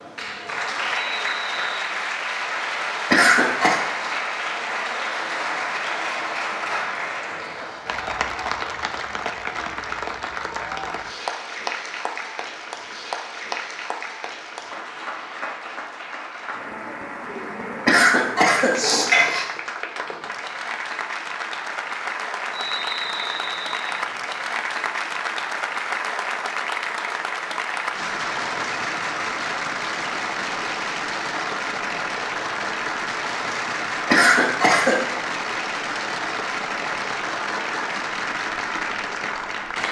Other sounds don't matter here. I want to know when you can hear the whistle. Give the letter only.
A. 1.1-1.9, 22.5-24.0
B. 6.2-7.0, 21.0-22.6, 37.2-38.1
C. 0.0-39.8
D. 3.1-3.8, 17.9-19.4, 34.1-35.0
A.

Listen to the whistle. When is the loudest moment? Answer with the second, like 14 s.
23 s.